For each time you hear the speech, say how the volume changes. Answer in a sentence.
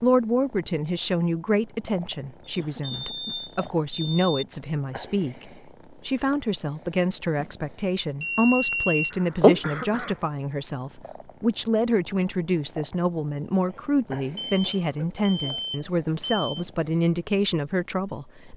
You can hear the speech from 0.0 to 18.5 s, at a steady volume.